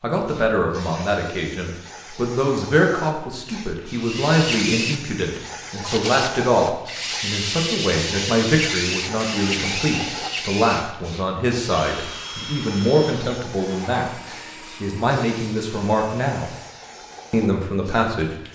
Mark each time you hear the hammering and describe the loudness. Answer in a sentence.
You can't hear the hammering here.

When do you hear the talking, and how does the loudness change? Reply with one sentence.
The talking can be heard from 0.0 to 16.5 s, at a steady volume; and briefly from 17.3 to 18.4 s.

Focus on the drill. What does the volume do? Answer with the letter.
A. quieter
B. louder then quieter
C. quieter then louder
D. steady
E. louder
A.